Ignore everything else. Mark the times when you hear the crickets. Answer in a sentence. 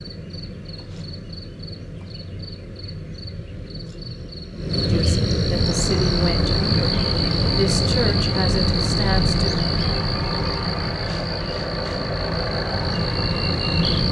You can hear the crickets from 0.0 to 14.0 s.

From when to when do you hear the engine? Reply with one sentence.
You can hear the engine from 5.5 to 14.0 s.